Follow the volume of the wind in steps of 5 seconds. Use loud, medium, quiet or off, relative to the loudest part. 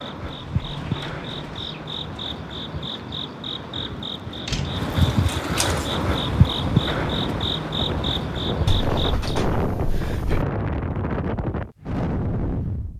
off, loud, loud.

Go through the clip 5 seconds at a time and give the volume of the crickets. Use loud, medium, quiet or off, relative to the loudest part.
medium, loud, off.